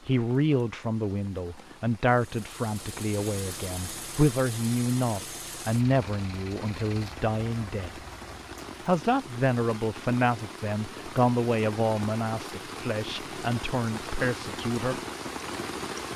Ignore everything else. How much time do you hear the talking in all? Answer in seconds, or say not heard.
14 s.